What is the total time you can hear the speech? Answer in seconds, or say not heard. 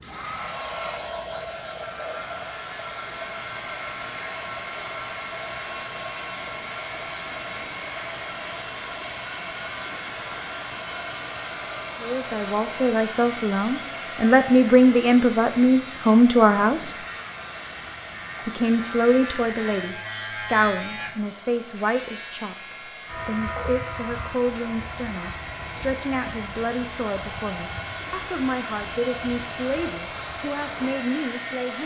18 s.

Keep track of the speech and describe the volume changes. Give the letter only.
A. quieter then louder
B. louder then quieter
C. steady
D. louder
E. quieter
E.